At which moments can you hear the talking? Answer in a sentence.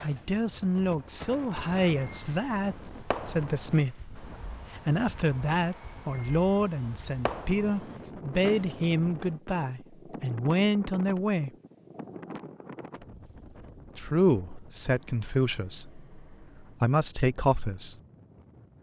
You can hear the talking from 0.0 to 11.5 s and from 13.9 to 17.9 s.